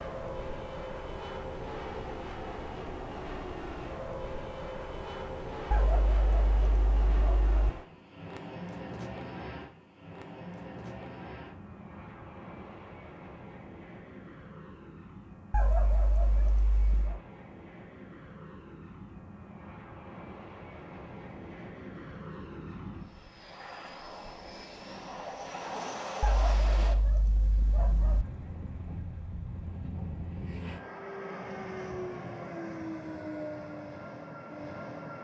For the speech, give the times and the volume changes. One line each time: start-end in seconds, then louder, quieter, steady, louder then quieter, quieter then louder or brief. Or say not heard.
not heard.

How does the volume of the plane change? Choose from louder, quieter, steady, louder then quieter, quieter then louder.
quieter then louder.